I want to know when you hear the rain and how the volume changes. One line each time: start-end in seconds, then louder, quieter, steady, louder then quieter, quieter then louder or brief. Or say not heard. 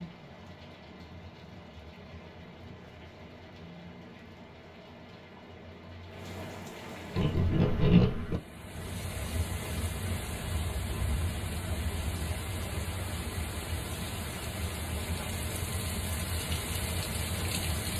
0.0-17.9 louder.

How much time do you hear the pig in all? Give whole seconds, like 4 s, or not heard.
3 s.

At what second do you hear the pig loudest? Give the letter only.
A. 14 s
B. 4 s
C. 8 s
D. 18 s
C.